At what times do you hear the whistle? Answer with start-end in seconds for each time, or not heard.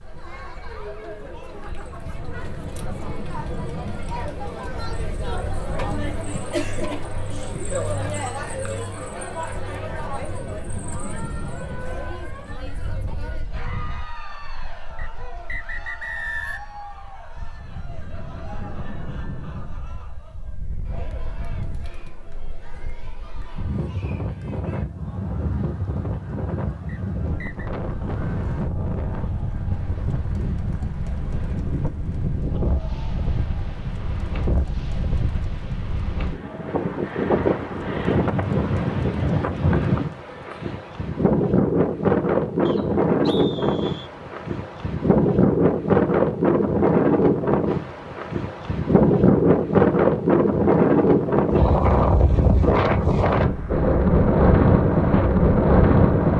14.9-16.7, 26.9-27.7, 42.6-44.1.